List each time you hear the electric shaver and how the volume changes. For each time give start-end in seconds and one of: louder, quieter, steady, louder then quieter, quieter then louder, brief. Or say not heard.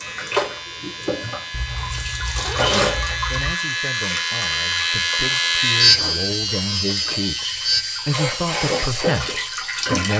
0.0-9.9 louder then quieter.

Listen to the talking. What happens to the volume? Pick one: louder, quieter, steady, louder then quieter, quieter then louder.
louder.